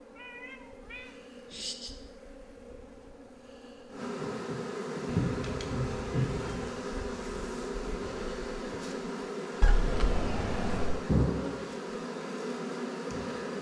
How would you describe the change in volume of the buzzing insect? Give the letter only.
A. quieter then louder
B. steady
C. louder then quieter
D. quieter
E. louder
E.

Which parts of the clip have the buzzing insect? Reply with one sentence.
The buzzing insect can be heard from 0.0 to 13.5 s.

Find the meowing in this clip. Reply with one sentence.
You can hear the meowing from 0.1 to 1.9 s, from 5.2 to 6.8 s and from 9.6 to 11.1 s.